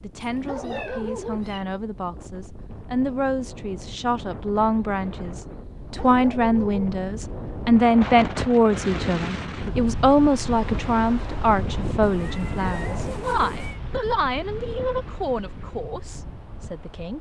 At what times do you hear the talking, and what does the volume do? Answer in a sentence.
The talking can be heard from 0.0 to 17.1 s, getting louder then quieter.